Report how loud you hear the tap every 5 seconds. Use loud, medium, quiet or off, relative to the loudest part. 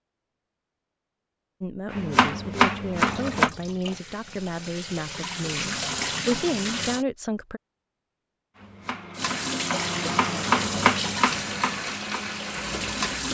medium, loud, loud.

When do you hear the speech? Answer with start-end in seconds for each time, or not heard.
1.6-7.6.